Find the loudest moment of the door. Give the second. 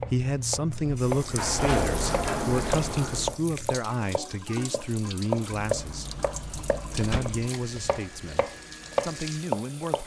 2 s.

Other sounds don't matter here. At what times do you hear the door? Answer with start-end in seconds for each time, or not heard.
1.0-3.4, 5.5-7.5.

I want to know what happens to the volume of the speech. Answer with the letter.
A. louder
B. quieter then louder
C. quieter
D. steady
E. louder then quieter
C.